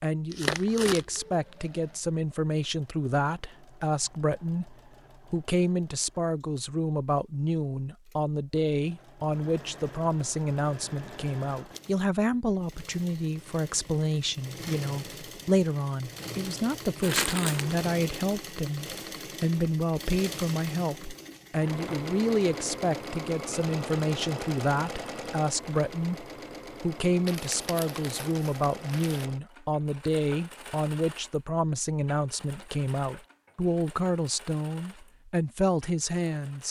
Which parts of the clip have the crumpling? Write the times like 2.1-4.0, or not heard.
0.3-1.2, 17.0-17.9, 27.2-29.2.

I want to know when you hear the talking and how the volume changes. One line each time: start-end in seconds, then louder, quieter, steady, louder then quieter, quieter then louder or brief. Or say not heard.
0.0-36.6 steady.